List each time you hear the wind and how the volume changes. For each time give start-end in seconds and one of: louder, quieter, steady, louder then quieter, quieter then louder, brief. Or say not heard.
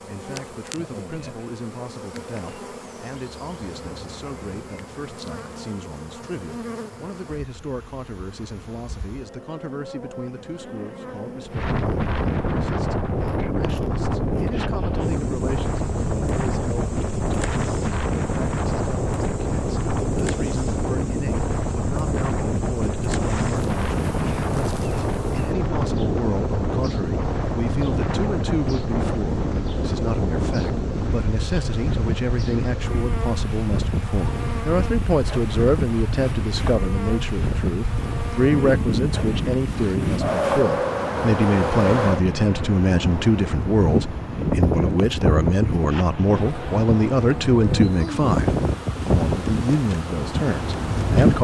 11.5-51.3 steady.